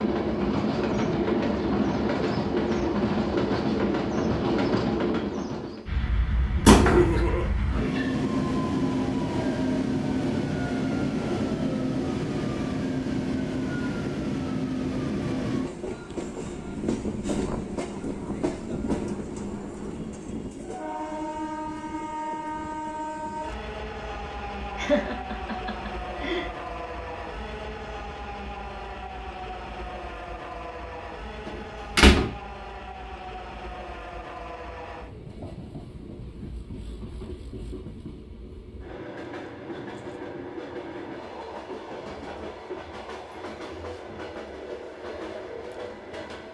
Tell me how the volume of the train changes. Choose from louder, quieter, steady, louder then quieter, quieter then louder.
quieter.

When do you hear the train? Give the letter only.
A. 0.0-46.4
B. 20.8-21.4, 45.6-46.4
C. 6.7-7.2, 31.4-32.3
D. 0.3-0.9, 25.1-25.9
A.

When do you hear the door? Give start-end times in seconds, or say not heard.
6.7-7.2, 31.4-32.3.